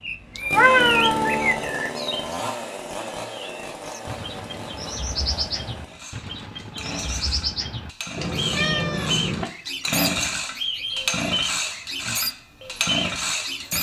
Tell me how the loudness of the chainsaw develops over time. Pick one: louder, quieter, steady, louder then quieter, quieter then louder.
quieter then louder.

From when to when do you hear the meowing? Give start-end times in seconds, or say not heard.
0.3-1.6, 8.2-9.4.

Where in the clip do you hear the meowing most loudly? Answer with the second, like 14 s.
1 s.